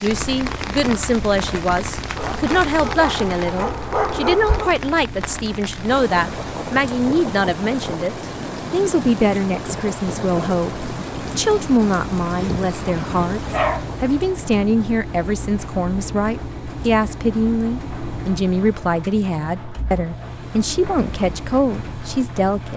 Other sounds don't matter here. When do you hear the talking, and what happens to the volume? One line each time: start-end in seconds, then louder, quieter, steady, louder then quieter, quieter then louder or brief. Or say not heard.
0.0-22.7 steady.